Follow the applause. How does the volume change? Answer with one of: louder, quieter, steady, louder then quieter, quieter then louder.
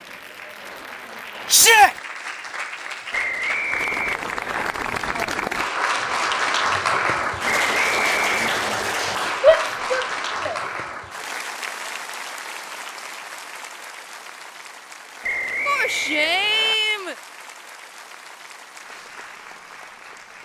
louder then quieter.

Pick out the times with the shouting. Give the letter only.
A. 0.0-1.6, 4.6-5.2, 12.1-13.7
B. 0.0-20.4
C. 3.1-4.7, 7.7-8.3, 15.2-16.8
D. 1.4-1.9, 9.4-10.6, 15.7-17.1
D.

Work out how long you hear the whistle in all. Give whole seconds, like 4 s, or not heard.
4 s.